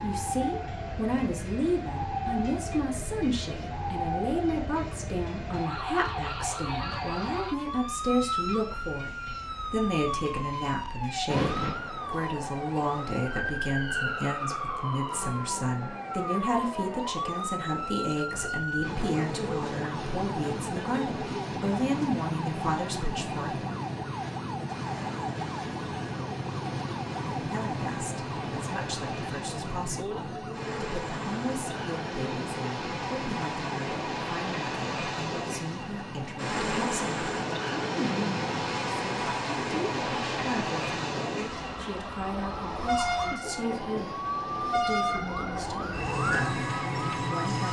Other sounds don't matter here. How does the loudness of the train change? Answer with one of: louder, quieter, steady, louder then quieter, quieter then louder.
louder.